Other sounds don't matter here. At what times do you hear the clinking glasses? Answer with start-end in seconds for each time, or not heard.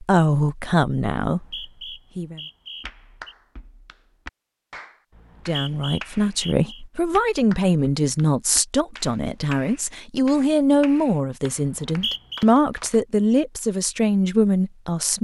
not heard.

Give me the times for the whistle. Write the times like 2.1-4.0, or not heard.
1.2-3.4, 5.2-6.8, 11.6-12.4.